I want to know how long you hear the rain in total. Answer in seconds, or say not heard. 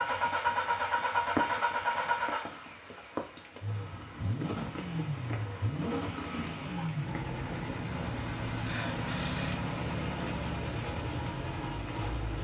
12 s.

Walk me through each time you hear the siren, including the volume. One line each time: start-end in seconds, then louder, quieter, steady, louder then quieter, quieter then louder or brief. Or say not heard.
not heard.